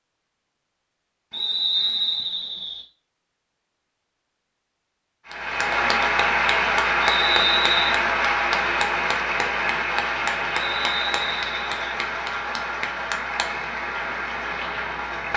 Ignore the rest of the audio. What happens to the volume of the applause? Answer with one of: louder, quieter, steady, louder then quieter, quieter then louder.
quieter.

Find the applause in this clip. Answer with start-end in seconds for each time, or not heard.
5.2-15.3.